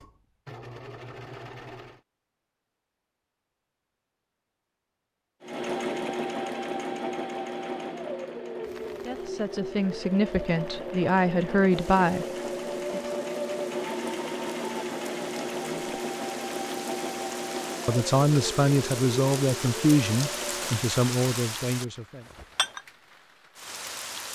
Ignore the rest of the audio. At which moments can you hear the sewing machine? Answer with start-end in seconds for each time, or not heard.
0.0-2.0, 5.4-20.9.